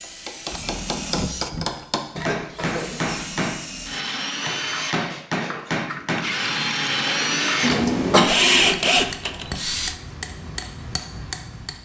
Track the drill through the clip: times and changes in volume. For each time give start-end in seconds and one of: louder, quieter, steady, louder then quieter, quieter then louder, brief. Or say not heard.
0.0-9.9 louder.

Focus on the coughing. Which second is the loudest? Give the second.
8 s.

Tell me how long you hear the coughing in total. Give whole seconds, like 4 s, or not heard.
2 s.